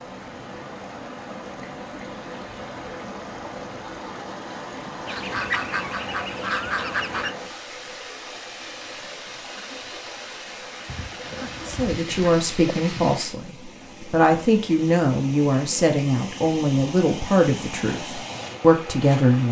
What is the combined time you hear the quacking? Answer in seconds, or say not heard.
4 s.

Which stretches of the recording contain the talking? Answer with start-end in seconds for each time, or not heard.
11.7-19.4.